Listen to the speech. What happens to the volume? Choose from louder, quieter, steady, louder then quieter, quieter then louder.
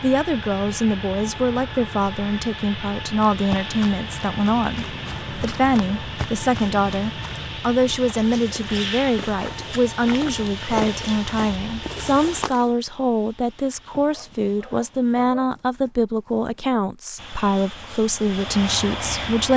steady.